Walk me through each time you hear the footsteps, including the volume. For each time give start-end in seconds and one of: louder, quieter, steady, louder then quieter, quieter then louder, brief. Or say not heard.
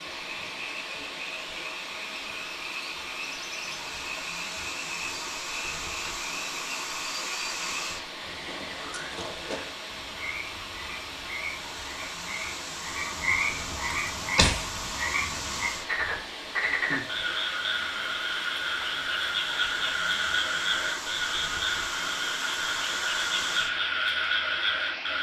not heard.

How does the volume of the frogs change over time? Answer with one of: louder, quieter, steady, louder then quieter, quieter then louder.
louder.